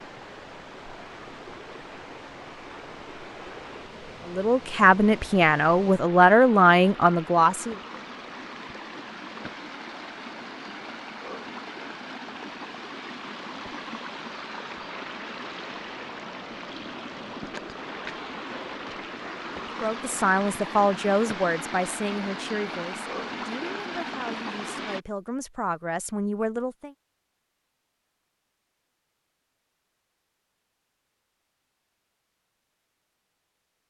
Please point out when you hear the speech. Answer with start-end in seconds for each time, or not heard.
4.2-7.8, 19.8-26.9.